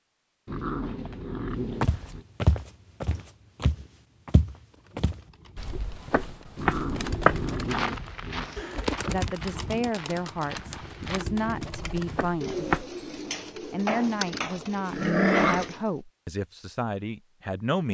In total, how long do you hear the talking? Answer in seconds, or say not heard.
8 s.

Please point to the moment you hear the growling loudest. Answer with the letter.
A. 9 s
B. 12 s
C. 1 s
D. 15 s
D.